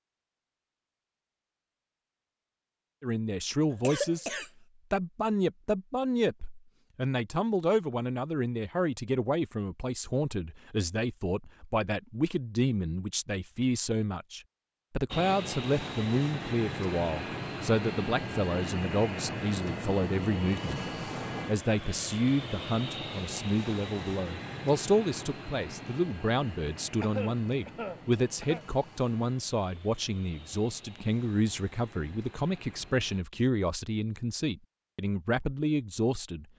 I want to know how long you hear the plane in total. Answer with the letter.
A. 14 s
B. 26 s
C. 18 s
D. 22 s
C.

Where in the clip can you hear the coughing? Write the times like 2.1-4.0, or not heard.
3.7-4.5, 27.0-28.6.